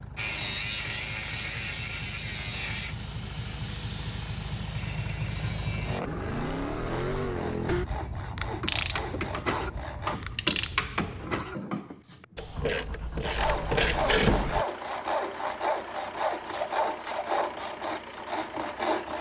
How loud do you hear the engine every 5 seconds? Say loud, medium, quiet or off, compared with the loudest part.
medium, loud, medium, medium.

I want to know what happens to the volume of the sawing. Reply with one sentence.
The loudness of the sawing goes down, then up.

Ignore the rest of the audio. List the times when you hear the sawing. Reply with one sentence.
The sawing can be heard from 0.1 to 10.2 s and from 13.2 to 19.1 s.